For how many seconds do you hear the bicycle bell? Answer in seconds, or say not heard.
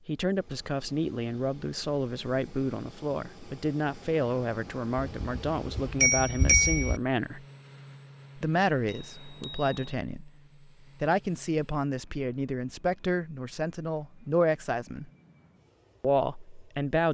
3 s.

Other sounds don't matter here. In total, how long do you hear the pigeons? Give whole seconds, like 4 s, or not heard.
not heard.